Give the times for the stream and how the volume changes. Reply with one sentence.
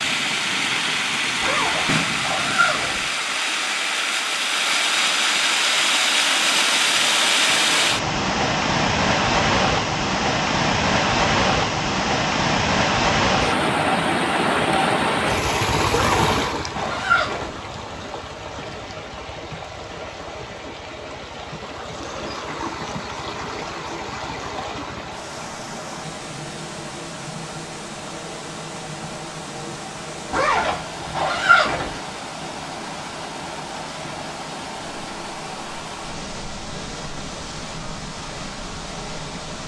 The stream can be heard from 0.0 to 39.6 s, getting quieter.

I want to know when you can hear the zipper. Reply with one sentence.
The zipper can be heard from 1.4 to 3.0 s, from 15.9 to 17.6 s and from 30.3 to 32.0 s.